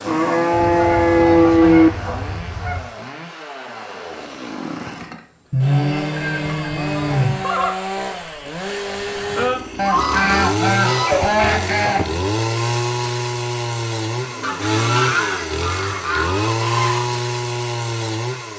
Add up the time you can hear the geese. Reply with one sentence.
The geese can be heard for 9 seconds in total.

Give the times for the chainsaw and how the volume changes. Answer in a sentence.
The chainsaw can be heard from 0.0 to 18.5 s, getting louder.